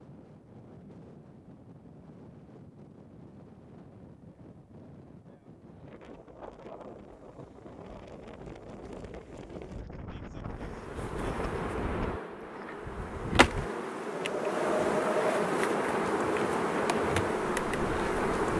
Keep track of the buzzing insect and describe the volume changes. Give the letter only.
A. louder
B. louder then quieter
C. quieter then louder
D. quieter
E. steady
A.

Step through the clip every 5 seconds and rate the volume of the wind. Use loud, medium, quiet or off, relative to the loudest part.
quiet, medium, loud, loud.